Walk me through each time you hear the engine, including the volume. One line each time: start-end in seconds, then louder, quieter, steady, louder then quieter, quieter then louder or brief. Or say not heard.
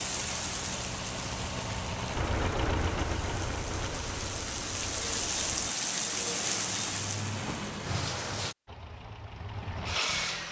0.0-5.8 louder then quieter
8.7-10.4 brief.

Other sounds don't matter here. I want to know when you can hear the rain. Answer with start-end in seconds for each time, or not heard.
0.0-8.6.